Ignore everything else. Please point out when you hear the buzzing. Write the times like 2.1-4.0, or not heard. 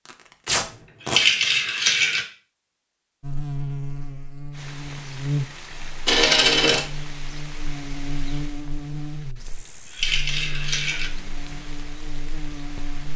3.2-13.1.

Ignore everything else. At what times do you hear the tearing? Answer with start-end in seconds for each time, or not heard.
0.1-1.2.